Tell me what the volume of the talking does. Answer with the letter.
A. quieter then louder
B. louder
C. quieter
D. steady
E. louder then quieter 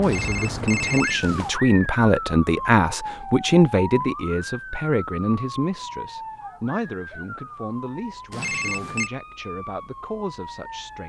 C.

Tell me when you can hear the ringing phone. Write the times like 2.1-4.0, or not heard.
0.0-1.5, 8.3-9.1.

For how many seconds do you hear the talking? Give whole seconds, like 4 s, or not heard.
11 s.